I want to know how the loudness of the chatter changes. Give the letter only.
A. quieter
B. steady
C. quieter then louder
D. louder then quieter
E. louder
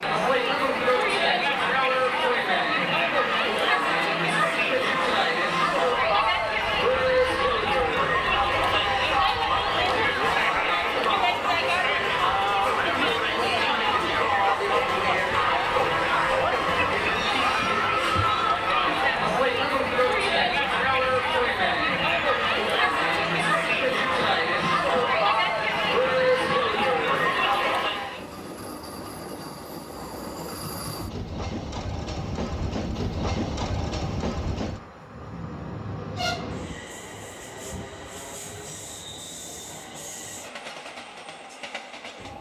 B.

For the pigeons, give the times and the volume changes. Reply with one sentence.
The pigeons can't be heard in this clip.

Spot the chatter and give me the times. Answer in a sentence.
The chatter can be heard from 0.0 to 28.2 s.